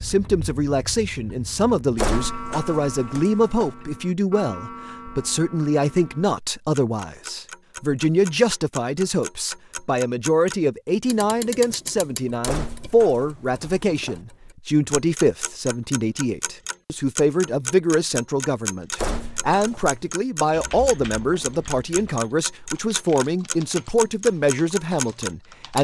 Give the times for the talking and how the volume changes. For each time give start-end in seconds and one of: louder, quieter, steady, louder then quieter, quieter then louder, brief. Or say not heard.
0.0-25.7 steady.